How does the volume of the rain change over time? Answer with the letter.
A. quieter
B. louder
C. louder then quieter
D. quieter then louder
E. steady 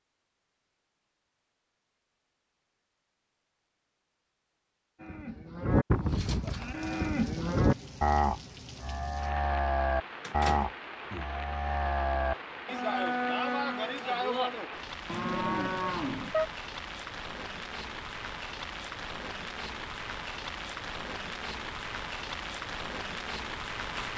B.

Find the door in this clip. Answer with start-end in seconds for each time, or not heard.
10.2-11.3.